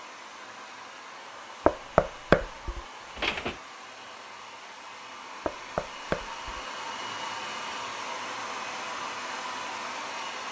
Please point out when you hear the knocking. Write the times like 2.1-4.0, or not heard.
1.6-3.5, 5.5-6.6.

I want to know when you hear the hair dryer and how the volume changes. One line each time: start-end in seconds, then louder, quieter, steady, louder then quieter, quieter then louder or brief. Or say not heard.
0.0-10.4 louder.